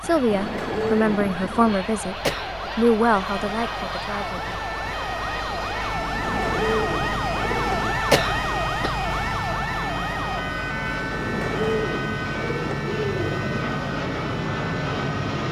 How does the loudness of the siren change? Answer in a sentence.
The volume of the siren goes up, then down.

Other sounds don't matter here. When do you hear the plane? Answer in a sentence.
You can hear the plane from 0.0 to 15.4 s.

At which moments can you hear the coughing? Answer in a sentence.
The coughing can be heard from 2.2 to 2.7 s and from 8.1 to 8.9 s.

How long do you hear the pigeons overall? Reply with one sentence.
The pigeons can be heard for 6 seconds in total.